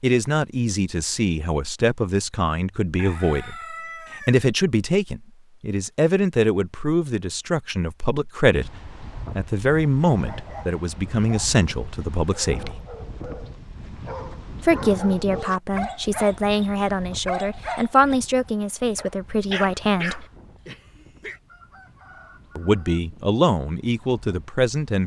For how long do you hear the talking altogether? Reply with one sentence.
The talking can be heard for 20 seconds in total.